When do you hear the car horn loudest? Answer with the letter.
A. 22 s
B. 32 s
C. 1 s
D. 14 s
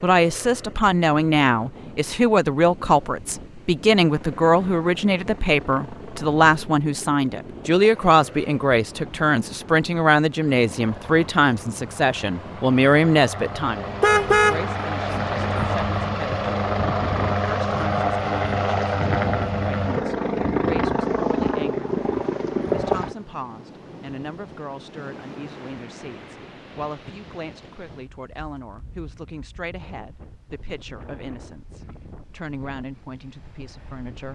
D.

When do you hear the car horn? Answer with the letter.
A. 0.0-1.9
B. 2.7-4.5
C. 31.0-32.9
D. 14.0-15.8
D.